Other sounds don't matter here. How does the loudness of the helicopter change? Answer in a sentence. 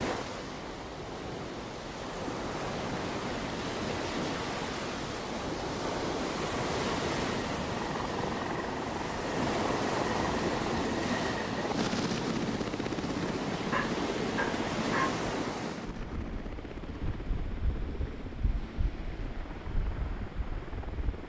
The volume of the helicopter goes down.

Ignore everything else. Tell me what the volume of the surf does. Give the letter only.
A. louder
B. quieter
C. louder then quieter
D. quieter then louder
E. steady
B.